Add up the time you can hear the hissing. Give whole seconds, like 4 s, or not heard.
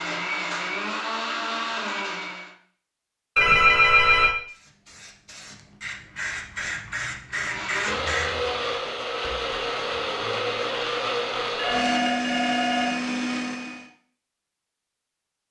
4 s.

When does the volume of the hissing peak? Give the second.
8 s.